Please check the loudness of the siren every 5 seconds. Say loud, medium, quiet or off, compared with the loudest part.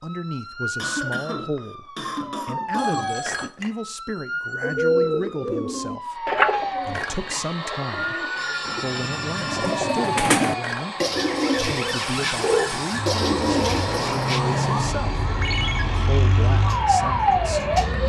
medium, medium, loud, loud.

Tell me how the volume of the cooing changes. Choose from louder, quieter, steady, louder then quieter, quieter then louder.
quieter then louder.